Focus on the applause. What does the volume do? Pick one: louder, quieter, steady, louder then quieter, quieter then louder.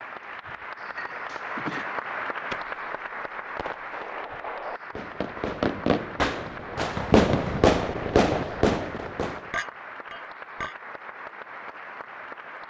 quieter.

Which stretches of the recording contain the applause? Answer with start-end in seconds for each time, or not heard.
0.0-12.6.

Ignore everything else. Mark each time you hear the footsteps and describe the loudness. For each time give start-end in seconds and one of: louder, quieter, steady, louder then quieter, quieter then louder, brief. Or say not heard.
not heard.